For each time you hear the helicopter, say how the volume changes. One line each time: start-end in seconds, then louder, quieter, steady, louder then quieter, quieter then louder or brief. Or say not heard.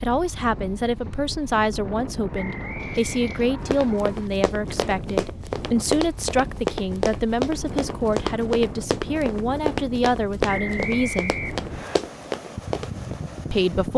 not heard.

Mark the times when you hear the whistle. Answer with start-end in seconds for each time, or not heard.
2.3-3.9, 10.4-12.0.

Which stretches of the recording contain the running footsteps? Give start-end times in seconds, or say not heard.
3.7-13.2.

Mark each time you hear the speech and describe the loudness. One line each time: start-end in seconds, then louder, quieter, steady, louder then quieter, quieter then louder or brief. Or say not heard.
0.0-11.3 steady
13.5-13.9 brief.